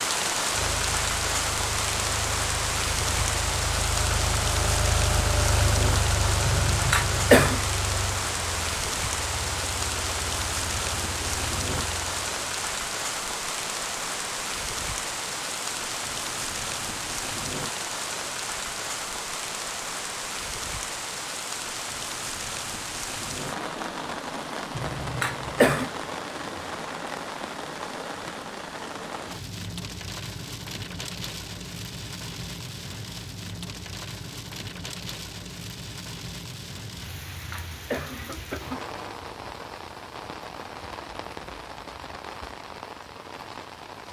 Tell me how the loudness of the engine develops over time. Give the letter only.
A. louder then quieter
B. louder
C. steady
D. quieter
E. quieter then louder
A.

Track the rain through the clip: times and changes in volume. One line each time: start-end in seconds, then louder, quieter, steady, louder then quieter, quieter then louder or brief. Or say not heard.
0.0-44.0 quieter.